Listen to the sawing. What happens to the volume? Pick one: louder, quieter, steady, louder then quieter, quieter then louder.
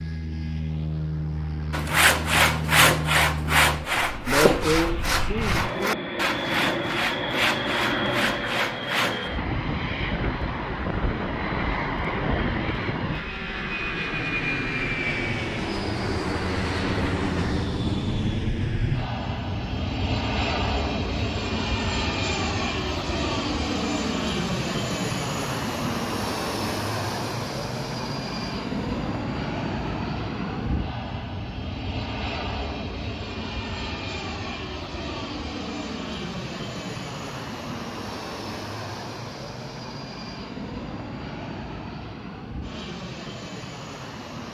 quieter.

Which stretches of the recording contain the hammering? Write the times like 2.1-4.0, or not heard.
not heard.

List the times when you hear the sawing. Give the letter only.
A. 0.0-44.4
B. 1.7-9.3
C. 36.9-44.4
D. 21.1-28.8
B.